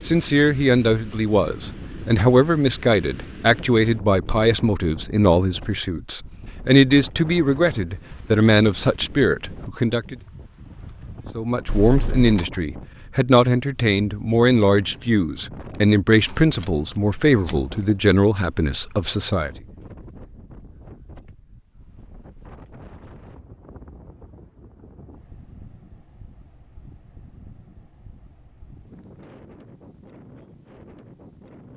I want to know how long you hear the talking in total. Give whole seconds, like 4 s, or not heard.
18 s.